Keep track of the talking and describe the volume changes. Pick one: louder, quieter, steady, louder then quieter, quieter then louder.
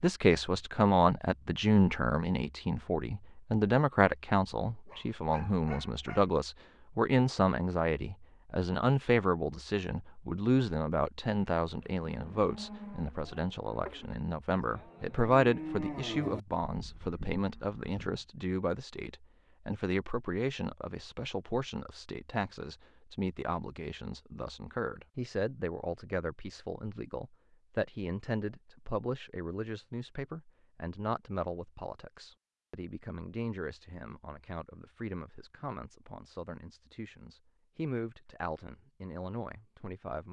quieter.